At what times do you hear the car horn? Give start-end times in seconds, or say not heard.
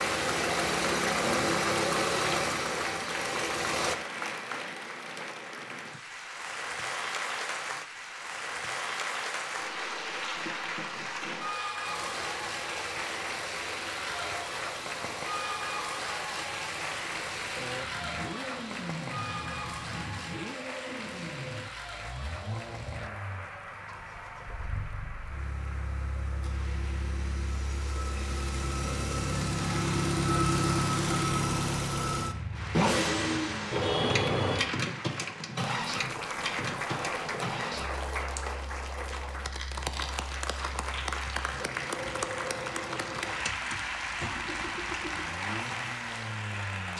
33.7-34.6.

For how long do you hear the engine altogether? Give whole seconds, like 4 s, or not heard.
39 s.